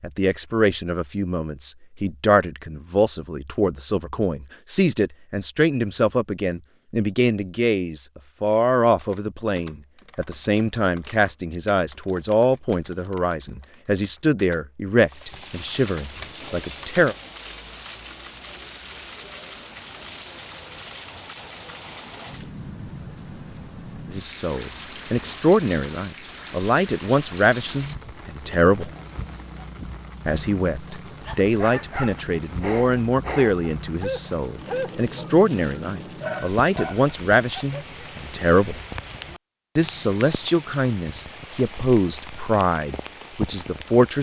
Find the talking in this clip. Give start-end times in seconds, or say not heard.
0.0-17.1, 24.1-28.9, 30.2-38.8, 39.8-44.1.